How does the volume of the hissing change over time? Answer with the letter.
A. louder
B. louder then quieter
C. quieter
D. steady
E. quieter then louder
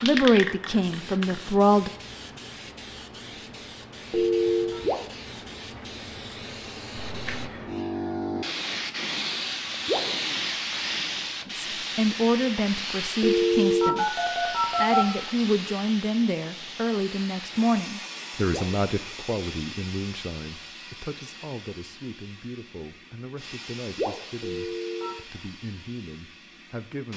B.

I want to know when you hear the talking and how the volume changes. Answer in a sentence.
You can hear the talking briefly from 0.0 to 1.9 s; and from 11.4 to 27.1 s, getting quieter.